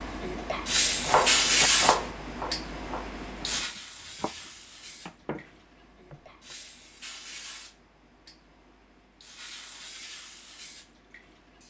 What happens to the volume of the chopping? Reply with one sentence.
The loudness of the chopping goes down, then up.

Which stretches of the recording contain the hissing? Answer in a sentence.
The hissing can be heard from 0.0 to 11.6 s.